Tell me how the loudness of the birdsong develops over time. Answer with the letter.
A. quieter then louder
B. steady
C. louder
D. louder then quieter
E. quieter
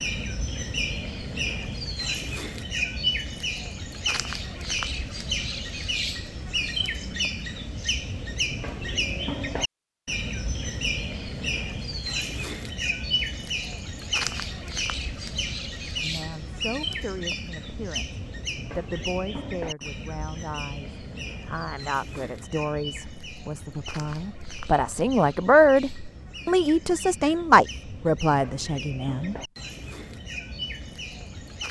E.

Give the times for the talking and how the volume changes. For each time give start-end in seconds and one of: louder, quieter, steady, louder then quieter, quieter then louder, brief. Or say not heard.
15.9-29.4 louder.